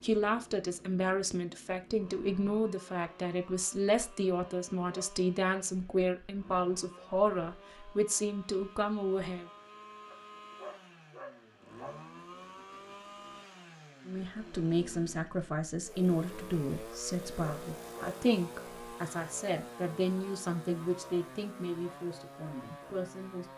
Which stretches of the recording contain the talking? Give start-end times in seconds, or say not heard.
0.0-9.4, 14.1-23.5.